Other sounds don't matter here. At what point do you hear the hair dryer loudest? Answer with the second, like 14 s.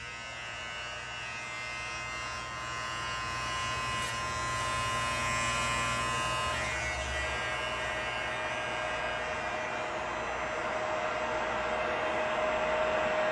13 s.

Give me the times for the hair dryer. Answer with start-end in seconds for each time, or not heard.
0.0-13.2.